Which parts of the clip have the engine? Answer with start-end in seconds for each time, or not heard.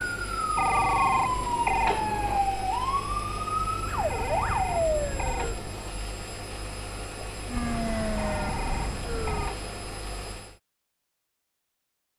0.0-10.6.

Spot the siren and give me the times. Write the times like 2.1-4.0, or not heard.
0.0-5.5, 7.5-9.6.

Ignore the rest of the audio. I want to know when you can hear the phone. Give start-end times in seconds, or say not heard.
0.6-2.4, 4.1-6.0, 8.2-9.9.